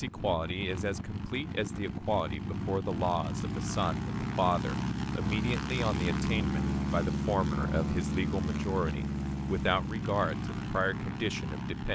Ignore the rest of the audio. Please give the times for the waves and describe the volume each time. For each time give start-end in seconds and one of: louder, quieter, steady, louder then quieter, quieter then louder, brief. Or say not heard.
not heard.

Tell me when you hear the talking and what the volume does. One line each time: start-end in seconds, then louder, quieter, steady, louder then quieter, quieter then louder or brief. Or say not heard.
0.0-11.9 steady.